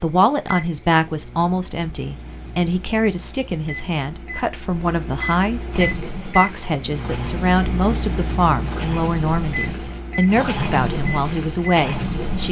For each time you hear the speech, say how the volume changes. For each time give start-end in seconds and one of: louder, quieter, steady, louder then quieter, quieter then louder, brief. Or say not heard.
0.0-12.4 steady.